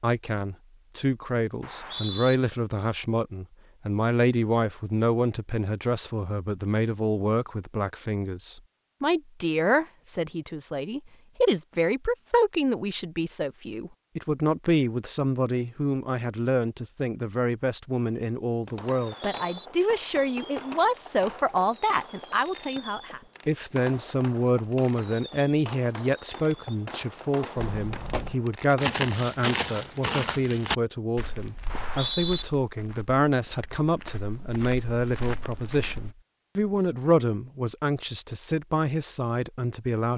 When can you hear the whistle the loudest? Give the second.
32 s.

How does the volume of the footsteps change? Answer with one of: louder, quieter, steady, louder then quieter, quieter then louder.
quieter then louder.